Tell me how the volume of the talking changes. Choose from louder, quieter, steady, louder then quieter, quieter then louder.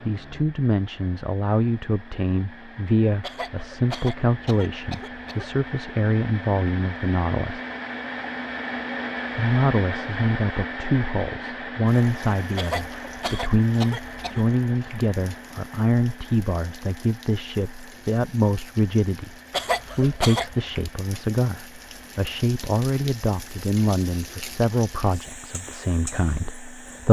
steady.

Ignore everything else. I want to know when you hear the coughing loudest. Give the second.
20 s.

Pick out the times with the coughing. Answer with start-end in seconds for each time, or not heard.
3.2-5.5, 12.6-14.4, 19.5-20.6.